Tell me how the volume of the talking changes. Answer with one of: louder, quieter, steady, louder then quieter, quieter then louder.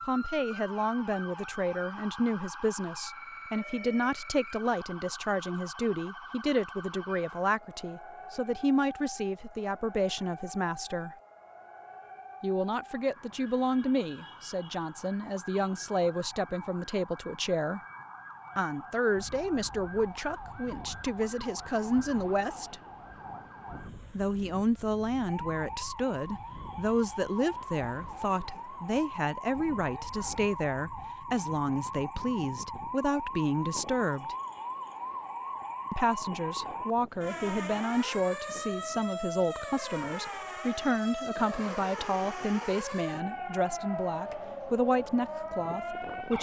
steady.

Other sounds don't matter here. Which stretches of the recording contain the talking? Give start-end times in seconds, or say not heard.
0.0-11.1, 12.4-17.8, 18.6-22.8, 24.1-34.4, 35.9-46.3.